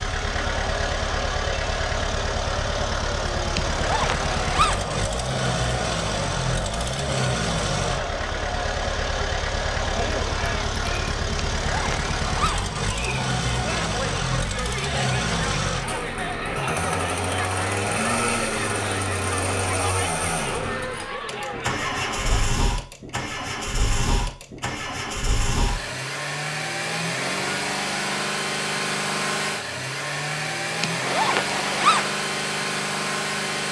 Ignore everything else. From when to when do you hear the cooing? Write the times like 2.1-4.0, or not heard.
not heard.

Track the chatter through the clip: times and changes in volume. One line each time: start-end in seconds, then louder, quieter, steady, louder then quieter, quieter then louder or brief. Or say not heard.
0.1-22.5 steady.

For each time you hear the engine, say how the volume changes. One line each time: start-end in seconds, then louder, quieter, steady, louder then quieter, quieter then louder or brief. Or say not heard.
0.0-33.6 steady.